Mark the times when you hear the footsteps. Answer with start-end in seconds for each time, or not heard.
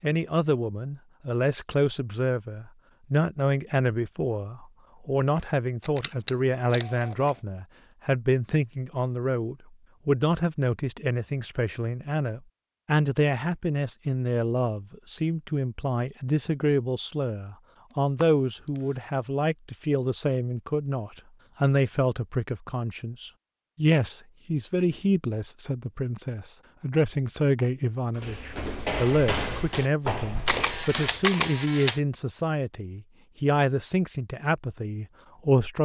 28.1-31.3.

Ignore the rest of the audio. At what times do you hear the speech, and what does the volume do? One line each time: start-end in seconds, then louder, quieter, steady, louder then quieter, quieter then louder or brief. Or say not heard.
0.0-35.7 steady.